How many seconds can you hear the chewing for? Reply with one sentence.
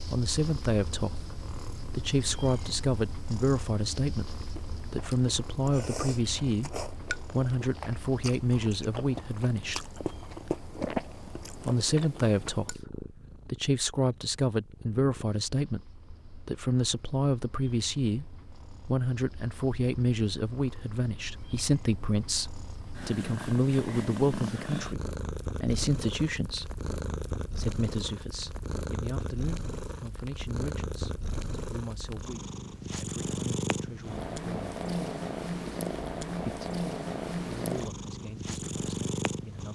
The chewing can be heard for 8 seconds in total.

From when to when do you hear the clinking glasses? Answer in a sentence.
The clinking glasses can't be heard in this clip.